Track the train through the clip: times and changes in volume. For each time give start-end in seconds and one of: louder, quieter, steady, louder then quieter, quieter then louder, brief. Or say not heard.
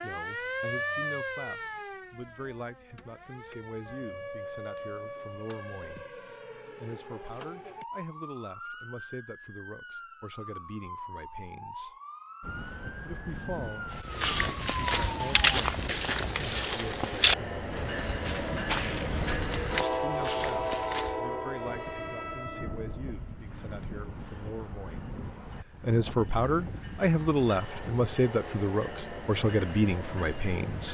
12.4-30.9 louder then quieter.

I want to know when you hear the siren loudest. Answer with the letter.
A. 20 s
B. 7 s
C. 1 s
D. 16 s
C.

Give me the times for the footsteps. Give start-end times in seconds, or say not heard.
13.9-21.1.